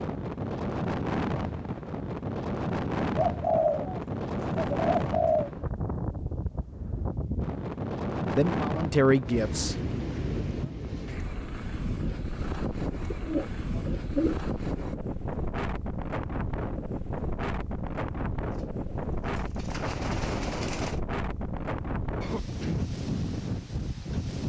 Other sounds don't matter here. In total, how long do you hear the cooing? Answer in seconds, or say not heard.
6 s.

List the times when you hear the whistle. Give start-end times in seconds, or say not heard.
not heard.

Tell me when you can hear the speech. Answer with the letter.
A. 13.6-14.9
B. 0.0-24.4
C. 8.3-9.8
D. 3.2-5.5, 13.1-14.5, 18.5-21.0
C.